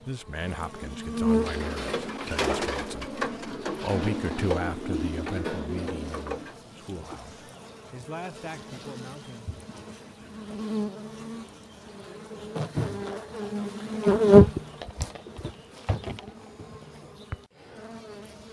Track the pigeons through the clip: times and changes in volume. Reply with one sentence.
You can hear the pigeons from 1.2 to 6.5 s, at a steady volume.